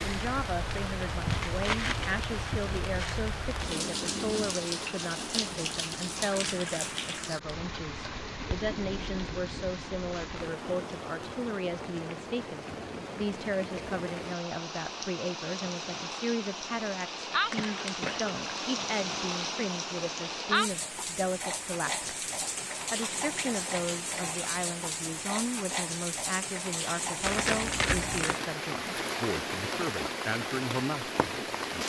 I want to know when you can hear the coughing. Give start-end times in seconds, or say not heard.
17.6-18.2.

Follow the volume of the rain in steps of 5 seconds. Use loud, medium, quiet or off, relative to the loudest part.
loud, loud, medium, loud, loud, loud, loud.